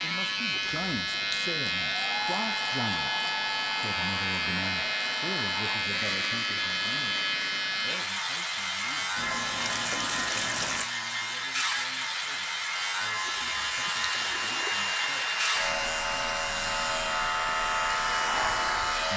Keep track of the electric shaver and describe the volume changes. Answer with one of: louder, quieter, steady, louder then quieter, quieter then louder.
steady.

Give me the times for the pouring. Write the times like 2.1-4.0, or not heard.
0.5-1.4, 9.2-10.9, 13.2-14.8.